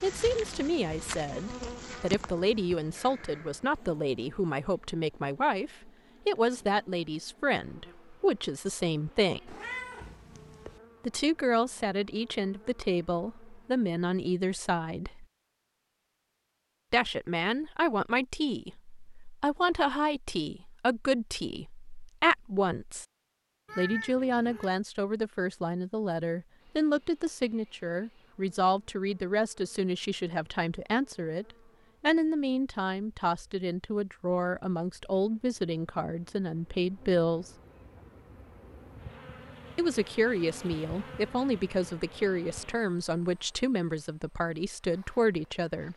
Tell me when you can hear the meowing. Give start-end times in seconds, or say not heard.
9.4-10.8, 23.6-24.7.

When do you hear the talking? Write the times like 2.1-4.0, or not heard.
0.0-9.6, 11.0-15.2, 16.9-23.1, 23.8-37.5, 39.8-45.9.